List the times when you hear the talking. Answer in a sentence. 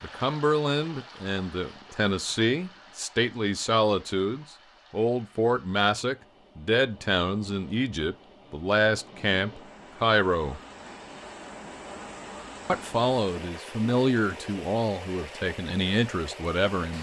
The talking can be heard from 0.0 to 10.6 s and from 12.7 to 16.9 s.